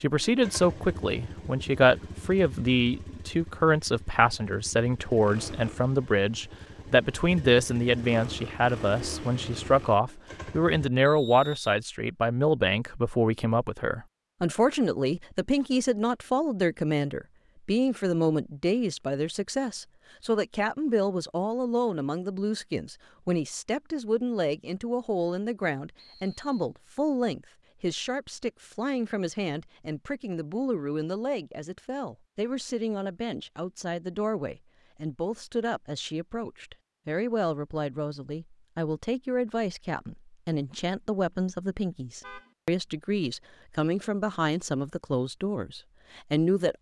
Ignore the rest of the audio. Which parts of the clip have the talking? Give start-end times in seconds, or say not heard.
0.0-46.7.